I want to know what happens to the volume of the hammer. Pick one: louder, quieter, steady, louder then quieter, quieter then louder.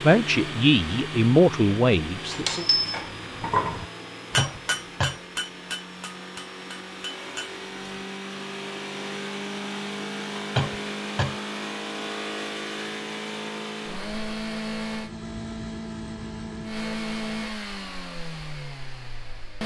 quieter.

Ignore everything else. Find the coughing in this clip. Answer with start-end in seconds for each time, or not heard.
4.3-5.2, 10.6-11.4.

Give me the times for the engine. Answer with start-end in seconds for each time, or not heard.
0.0-19.6.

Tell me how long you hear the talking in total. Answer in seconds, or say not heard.
3 s.